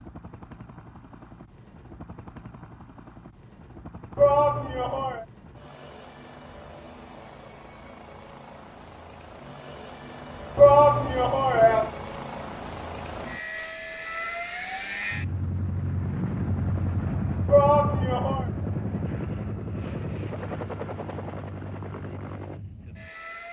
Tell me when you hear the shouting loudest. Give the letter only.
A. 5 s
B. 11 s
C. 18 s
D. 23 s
B.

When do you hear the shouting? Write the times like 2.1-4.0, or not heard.
4.2-5.2, 10.6-11.9, 17.4-18.4.